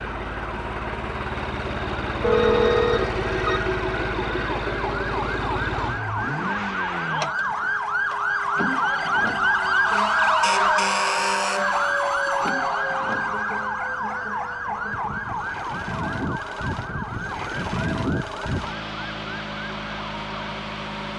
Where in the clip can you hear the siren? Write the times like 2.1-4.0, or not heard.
0.0-21.1.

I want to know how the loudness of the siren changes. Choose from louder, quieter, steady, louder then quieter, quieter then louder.
louder then quieter.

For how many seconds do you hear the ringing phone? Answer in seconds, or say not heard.
3 s.